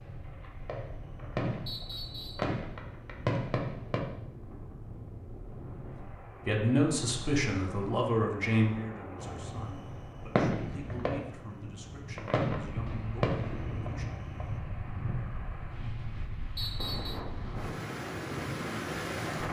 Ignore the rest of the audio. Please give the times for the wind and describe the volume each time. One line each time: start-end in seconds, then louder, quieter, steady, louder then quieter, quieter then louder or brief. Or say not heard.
0.0-19.4 louder.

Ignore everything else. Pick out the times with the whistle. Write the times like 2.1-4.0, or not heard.
1.6-2.5, 16.6-17.2.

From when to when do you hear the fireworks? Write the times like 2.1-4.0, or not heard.
0.0-4.0, 9.2-14.6.